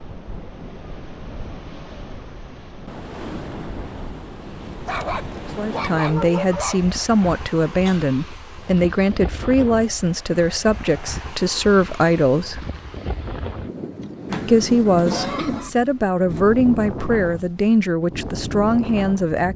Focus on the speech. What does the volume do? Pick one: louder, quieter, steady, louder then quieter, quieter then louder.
steady.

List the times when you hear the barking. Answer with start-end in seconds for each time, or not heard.
4.8-7.0.